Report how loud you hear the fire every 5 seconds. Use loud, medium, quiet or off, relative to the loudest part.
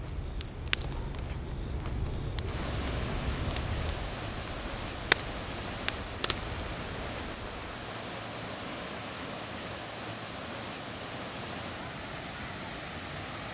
medium, loud, off.